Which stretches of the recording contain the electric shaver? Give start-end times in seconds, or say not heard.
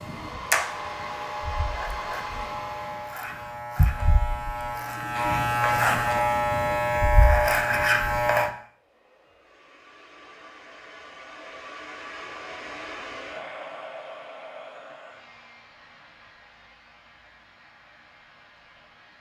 0.0-8.5.